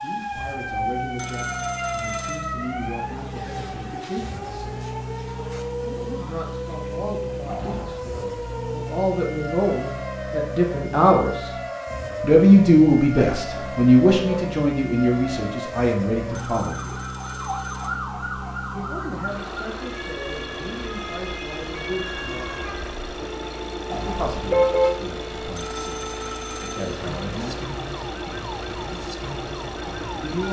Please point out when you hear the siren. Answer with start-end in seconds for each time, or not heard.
0.0-30.4.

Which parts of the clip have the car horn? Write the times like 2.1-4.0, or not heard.
7.5-8.1, 13.4-14.4, 23.9-24.9.